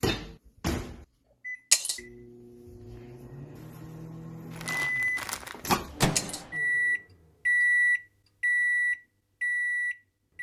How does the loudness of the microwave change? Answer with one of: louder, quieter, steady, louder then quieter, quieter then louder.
quieter then louder.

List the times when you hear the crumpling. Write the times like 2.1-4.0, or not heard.
4.5-5.8.